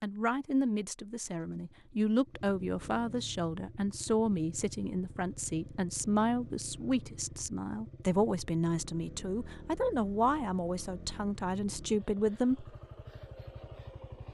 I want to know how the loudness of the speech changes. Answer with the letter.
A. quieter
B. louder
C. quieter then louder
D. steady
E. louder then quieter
D.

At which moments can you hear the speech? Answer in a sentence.
You can hear the speech from 0.0 to 12.8 s.